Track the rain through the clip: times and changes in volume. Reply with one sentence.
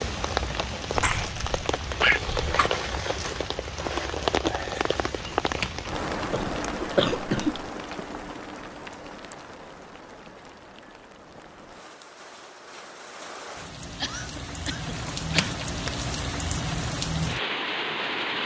You can hear the rain from 0.0 to 18.4 s, getting quieter then louder.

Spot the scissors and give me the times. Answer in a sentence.
You can hear the scissors from 5.2 to 6.2 s and from 14.9 to 15.9 s.